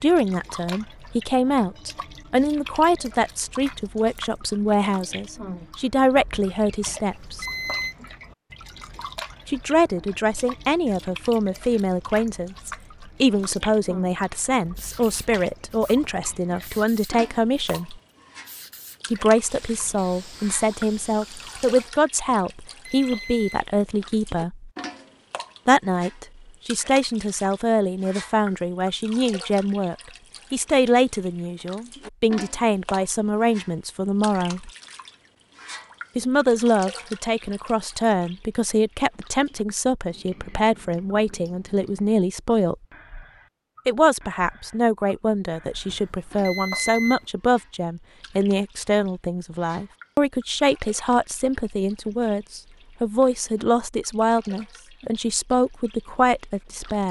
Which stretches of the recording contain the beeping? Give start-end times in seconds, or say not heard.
6.8-8.0, 22.3-23.6, 45.9-47.2.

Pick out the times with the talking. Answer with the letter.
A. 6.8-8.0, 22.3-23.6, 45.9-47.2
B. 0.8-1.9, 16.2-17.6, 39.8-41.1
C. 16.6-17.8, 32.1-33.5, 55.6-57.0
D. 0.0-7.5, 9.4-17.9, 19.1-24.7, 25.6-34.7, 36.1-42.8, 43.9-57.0
D.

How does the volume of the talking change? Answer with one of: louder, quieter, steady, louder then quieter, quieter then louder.
steady.